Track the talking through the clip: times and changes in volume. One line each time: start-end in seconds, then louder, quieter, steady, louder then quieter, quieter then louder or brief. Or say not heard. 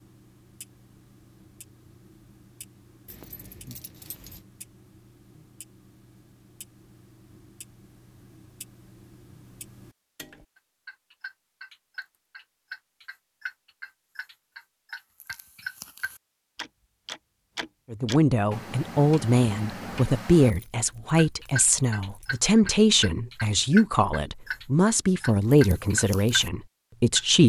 17.9-27.4 steady.